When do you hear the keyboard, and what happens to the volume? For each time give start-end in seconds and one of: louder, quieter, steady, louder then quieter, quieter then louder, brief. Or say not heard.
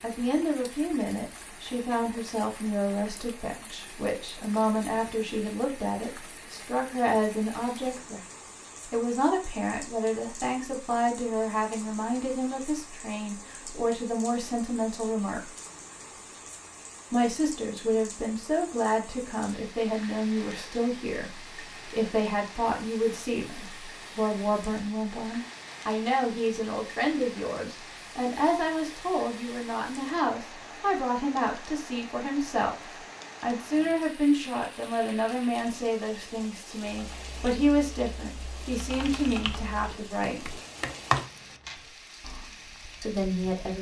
36.9-42.5 louder then quieter.